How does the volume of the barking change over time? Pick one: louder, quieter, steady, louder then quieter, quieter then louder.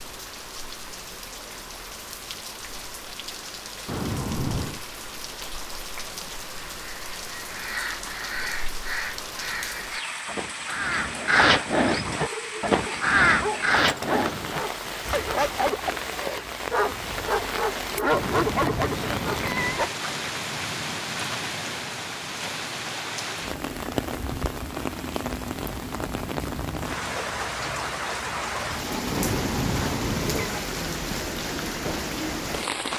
louder.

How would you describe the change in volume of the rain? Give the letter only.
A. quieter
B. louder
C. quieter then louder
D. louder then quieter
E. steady
B.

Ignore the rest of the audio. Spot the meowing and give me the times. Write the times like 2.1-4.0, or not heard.
3.9-4.8, 18.1-19.9, 29.1-30.5.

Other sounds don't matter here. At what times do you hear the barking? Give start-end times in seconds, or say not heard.
12.1-19.9.